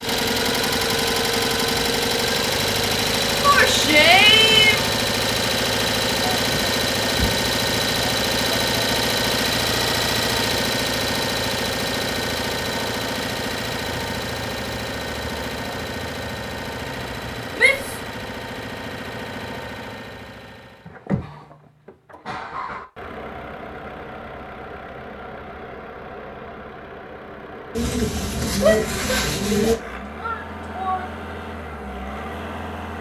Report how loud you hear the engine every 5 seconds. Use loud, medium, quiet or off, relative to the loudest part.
loud, loud, loud, medium, quiet, quiet, quiet.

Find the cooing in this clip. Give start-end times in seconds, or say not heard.
27.8-29.8.